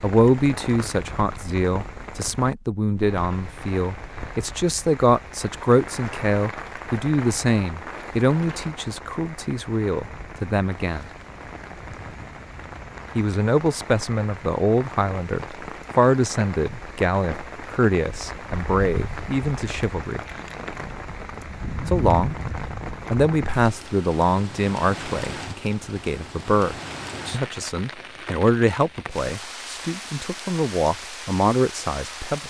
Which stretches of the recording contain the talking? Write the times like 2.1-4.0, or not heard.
0.0-11.1, 13.2-20.2, 21.9-22.4, 23.1-32.4.